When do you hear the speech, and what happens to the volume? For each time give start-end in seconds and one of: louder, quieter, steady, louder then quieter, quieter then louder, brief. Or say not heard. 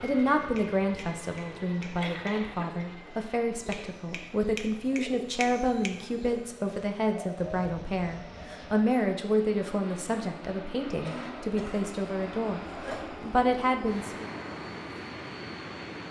0.0-14.2 steady.